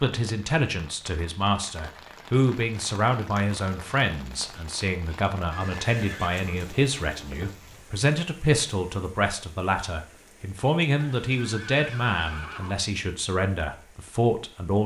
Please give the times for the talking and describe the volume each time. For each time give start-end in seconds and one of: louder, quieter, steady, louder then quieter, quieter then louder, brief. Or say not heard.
0.0-14.8 steady.